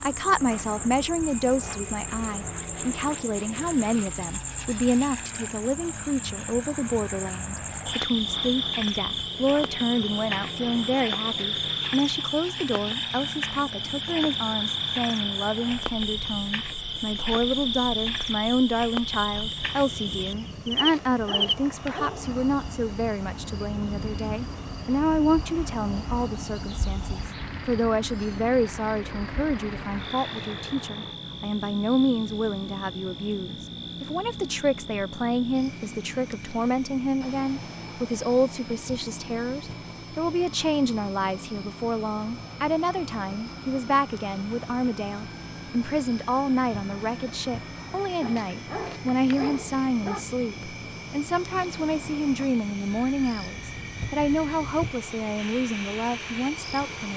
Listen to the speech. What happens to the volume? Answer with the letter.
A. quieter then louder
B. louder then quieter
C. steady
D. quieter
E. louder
C.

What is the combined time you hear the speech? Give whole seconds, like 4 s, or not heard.
57 s.